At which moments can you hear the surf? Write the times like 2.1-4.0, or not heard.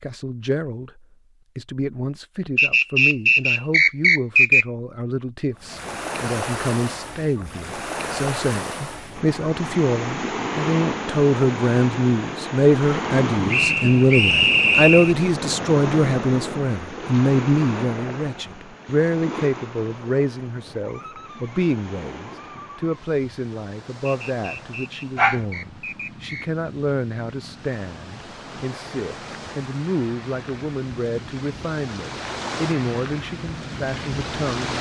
5.5-34.7.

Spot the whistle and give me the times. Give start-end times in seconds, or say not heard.
2.5-4.7, 13.5-15.2, 24.1-26.5.